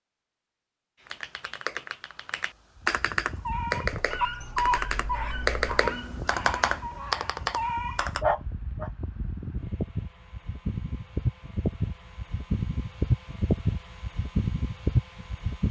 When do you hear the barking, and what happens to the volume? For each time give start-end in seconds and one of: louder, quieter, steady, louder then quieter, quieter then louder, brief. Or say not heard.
3.2-8.9 quieter then louder.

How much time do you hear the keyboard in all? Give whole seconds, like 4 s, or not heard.
7 s.